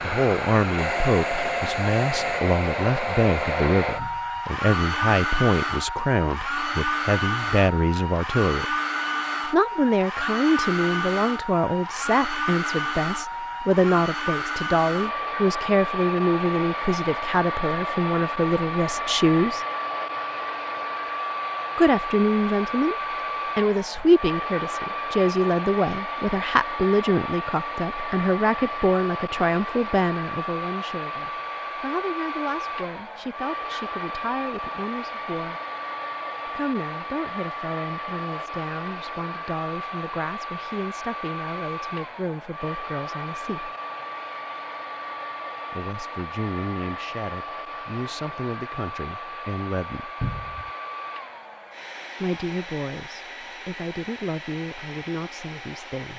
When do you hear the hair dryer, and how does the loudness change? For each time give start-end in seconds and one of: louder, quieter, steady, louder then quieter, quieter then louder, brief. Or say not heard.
0.0-56.1 quieter.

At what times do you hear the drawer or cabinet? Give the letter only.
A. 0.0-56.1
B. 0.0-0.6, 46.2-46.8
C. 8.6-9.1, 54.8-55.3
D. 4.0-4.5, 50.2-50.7
D.